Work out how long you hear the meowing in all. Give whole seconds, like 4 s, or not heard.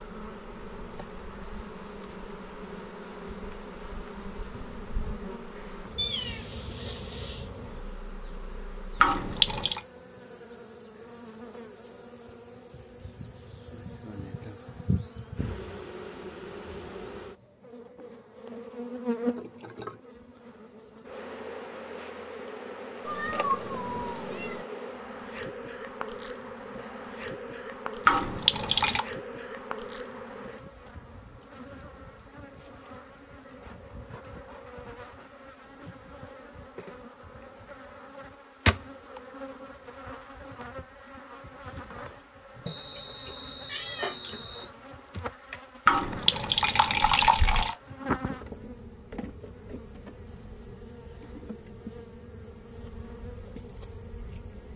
5 s.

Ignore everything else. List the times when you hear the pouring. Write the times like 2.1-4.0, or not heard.
9.0-9.8, 28.1-29.1, 45.9-47.8.